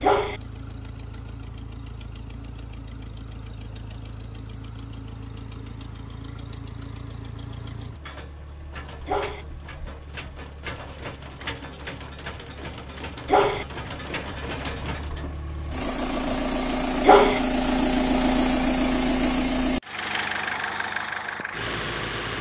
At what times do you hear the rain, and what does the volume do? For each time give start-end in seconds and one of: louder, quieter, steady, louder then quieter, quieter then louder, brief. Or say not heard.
not heard.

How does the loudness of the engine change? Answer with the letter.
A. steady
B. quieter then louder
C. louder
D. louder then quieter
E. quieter
C.